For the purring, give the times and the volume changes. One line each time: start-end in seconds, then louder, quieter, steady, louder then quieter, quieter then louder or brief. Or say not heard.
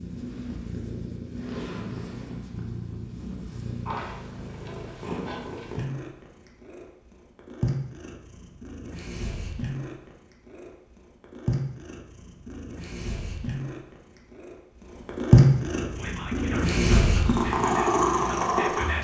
0.0-18.9 louder.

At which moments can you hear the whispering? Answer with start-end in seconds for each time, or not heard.
15.8-18.9.